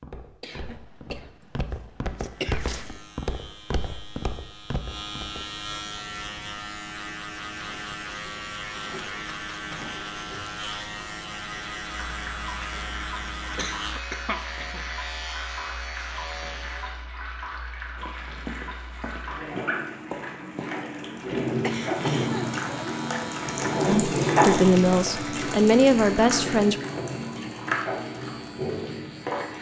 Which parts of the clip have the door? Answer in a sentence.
The door can't be heard in this clip.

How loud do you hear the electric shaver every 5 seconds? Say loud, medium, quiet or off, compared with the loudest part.
medium, loud, loud, loud, loud, medium.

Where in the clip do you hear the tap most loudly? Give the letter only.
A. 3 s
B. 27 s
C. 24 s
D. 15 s
C.